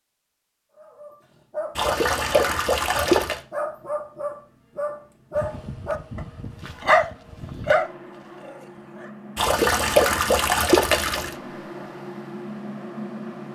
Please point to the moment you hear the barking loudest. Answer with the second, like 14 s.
7 s.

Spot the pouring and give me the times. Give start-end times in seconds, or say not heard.
1.8-3.4, 9.3-11.3.